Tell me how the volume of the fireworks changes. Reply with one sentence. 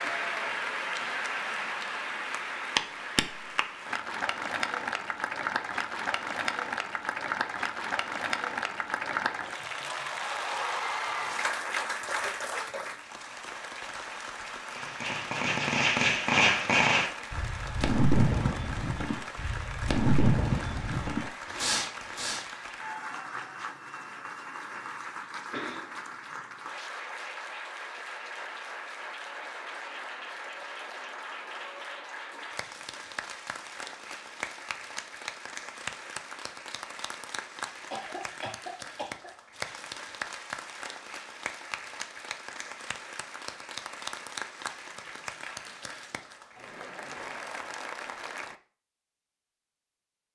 The volume of the fireworks goes down.